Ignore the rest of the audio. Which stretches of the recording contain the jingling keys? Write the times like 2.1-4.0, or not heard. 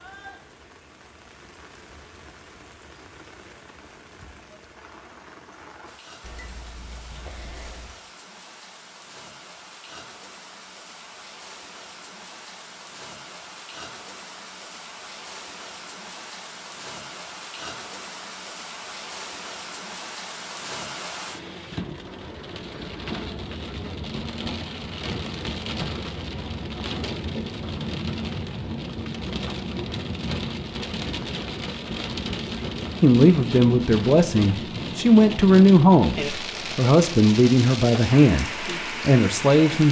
6.2-8.0.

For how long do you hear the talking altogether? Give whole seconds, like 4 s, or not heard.
7 s.